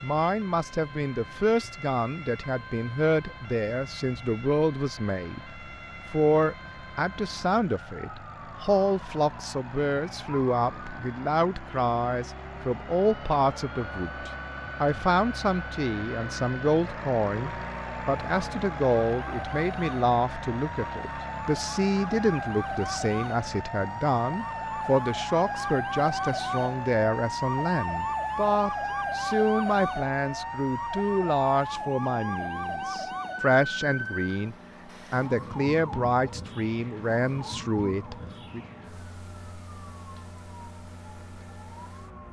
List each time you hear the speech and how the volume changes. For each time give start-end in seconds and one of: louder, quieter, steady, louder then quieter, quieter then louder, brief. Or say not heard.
0.0-38.6 steady.